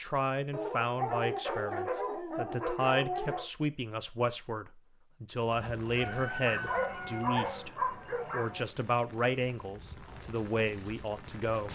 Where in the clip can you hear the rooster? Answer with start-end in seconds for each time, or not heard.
6.0-7.7.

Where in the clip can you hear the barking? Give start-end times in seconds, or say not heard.
0.5-3.5, 6.5-8.7.